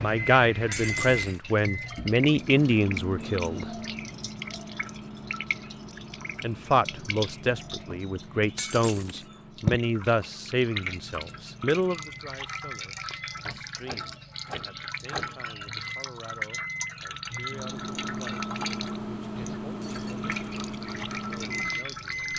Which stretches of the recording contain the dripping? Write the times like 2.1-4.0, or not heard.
0.0-22.3.